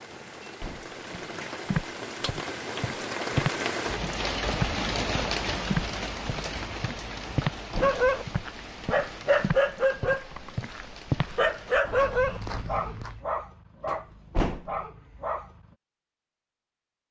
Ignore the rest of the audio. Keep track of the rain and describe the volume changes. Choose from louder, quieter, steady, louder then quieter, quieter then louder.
louder then quieter.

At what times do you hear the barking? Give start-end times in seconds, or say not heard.
7.8-15.8.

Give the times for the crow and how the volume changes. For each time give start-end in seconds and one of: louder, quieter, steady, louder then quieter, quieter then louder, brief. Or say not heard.
not heard.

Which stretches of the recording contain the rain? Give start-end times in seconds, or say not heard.
0.0-11.8.